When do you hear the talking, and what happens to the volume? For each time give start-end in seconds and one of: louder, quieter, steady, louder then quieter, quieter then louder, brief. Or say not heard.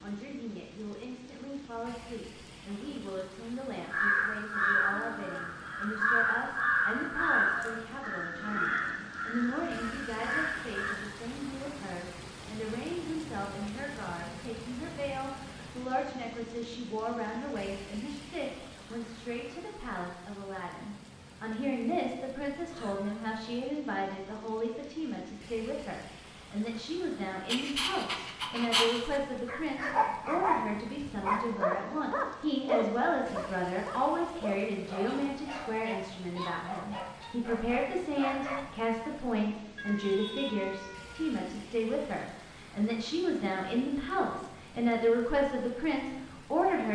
0.0-46.8 louder.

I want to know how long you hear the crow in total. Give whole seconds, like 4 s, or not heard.
7 s.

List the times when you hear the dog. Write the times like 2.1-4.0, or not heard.
27.4-38.6.